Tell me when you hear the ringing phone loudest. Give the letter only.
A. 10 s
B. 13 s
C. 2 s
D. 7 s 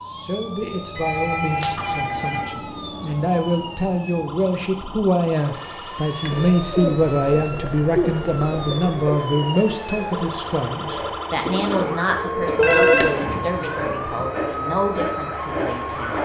B.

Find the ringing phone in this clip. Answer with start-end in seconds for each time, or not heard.
0.9-2.5, 5.5-6.6, 12.6-13.2.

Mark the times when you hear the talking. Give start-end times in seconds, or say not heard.
0.1-16.2.